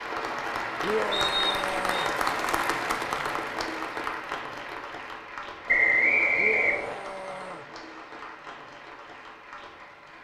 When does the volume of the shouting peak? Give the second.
1 s.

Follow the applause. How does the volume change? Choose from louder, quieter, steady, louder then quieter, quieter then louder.
quieter.